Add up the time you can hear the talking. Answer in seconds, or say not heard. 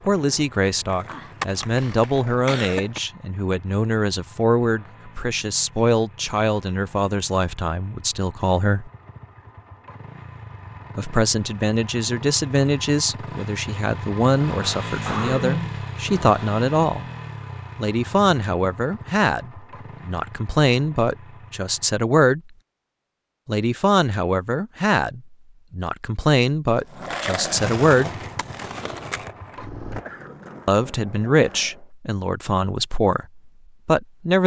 28 s.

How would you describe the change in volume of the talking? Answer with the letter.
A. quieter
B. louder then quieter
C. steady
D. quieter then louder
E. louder
C.